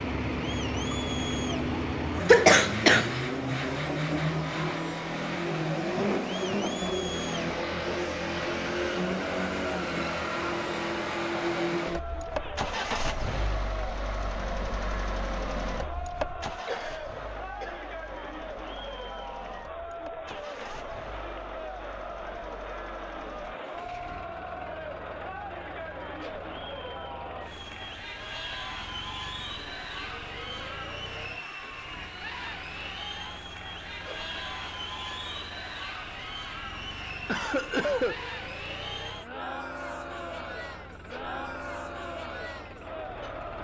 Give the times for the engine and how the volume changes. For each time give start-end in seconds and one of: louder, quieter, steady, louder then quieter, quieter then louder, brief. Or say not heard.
0.0-43.5 quieter.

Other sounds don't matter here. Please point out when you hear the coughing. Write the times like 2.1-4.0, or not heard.
2.2-3.1, 16.6-17.8, 37.2-38.2.